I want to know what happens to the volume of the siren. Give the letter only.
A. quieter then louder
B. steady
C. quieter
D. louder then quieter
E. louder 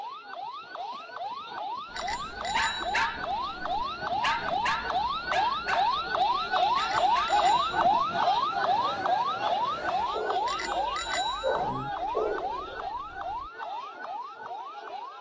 D.